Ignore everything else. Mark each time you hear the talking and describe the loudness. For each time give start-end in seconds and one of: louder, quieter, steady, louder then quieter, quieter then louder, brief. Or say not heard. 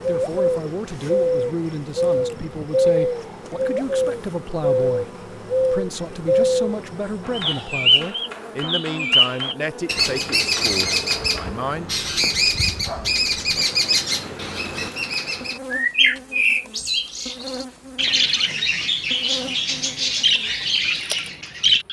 0.1-11.9 steady.